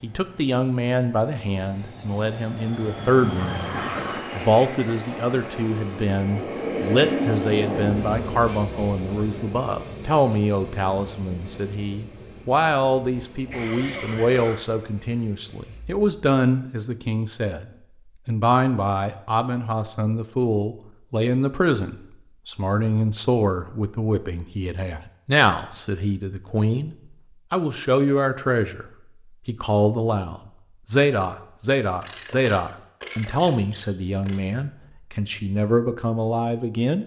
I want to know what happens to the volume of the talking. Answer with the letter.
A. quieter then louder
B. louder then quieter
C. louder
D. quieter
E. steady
E.